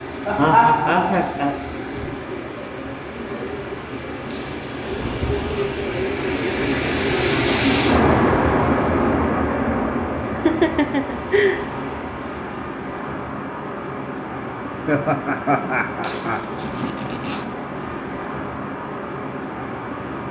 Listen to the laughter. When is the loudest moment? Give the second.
1 s.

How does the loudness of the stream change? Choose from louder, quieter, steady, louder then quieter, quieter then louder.
louder then quieter.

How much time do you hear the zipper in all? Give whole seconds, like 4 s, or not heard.
3 s.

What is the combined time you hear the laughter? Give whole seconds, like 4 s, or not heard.
5 s.